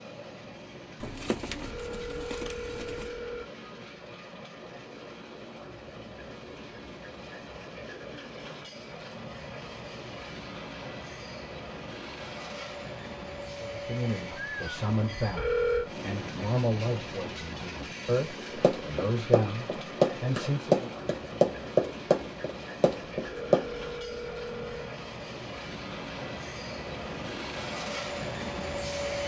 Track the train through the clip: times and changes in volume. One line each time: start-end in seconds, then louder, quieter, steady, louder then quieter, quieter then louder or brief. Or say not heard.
0.0-29.2 louder.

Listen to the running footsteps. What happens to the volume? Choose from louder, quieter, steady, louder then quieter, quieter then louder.
louder then quieter.